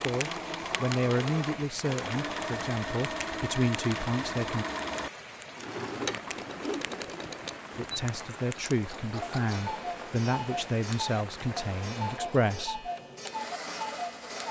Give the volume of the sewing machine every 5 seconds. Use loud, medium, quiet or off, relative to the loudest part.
loud, loud, medium.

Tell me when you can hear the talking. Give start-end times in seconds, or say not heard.
0.0-4.7, 7.8-12.9.